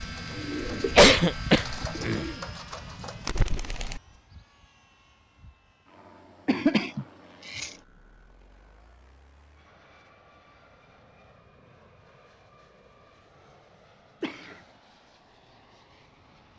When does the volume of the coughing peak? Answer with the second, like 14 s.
1 s.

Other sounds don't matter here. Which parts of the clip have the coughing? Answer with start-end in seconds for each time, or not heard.
0.8-2.3, 6.5-7.8, 14.2-14.6.